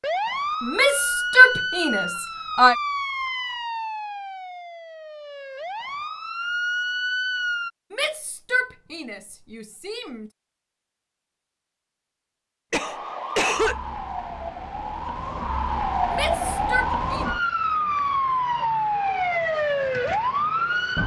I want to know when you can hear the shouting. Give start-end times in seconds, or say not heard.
0.6-2.8, 7.9-10.3, 16.1-17.3.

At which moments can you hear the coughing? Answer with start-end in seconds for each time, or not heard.
12.7-13.8.